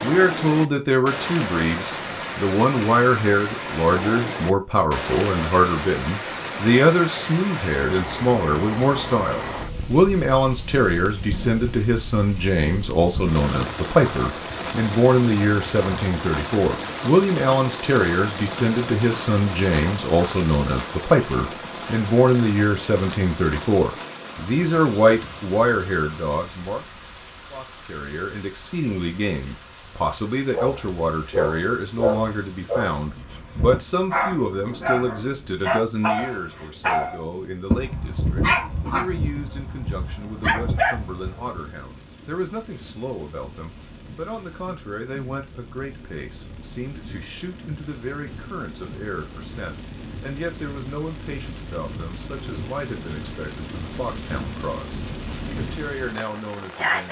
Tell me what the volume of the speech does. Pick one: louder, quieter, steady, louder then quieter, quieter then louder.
quieter.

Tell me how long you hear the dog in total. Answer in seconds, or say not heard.
11 s.